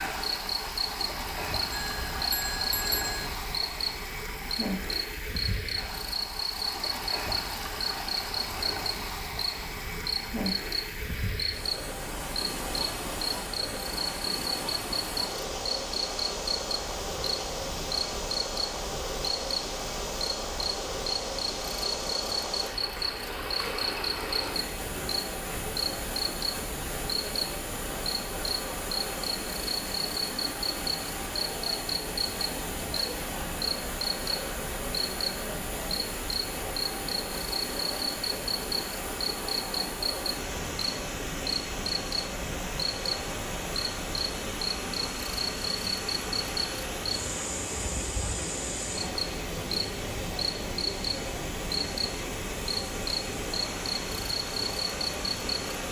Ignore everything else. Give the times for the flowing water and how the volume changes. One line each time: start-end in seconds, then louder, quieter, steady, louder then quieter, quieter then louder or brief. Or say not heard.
0.0-55.8 steady.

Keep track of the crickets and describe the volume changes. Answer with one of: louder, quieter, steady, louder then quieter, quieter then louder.
steady.